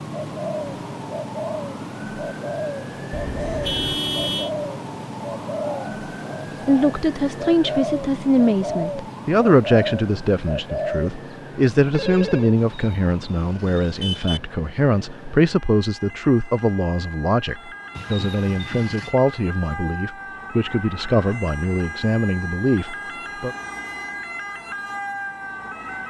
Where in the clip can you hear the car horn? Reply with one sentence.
You can hear the car horn from 3.1 to 4.5 s, from 12.6 to 14.4 s and from 17.9 to 19.1 s.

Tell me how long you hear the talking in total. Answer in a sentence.
You can hear the talking for 17 seconds altogether.